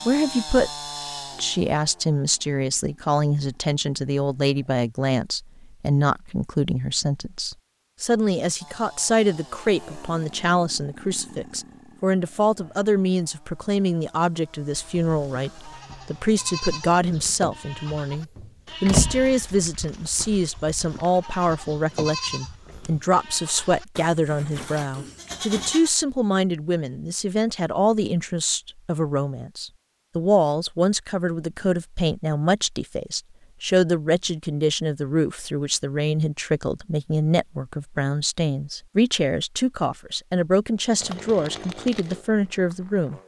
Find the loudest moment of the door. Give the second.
19 s.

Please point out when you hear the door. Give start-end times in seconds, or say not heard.
17.1-19.2, 21.6-22.8.